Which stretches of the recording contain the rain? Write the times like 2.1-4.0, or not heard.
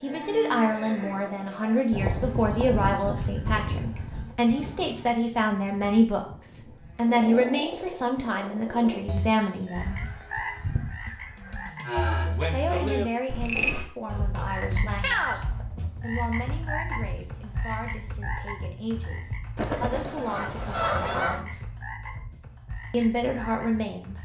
not heard.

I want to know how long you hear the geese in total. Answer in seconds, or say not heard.
6 s.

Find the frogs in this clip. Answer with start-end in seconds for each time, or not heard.
7.0-24.1.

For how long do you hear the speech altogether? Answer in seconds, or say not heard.
20 s.